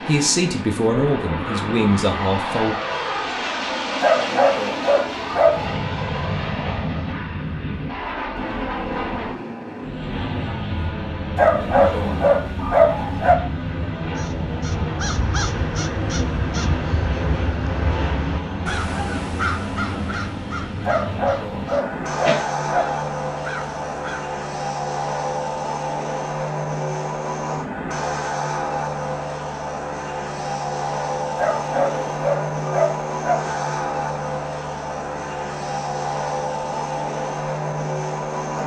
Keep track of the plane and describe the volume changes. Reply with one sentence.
The volume of the plane stays about the same.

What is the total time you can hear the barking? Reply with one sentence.
The barking can be heard for 8 seconds in total.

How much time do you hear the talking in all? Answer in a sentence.
The talking can be heard for 3 seconds in total.